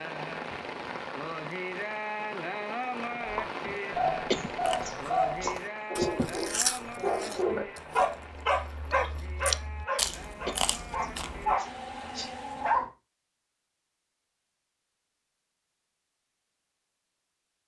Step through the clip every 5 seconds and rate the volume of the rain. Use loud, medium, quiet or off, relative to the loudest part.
loud, medium, medium, off.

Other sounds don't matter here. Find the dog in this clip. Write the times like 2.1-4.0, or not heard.
3.2-12.9.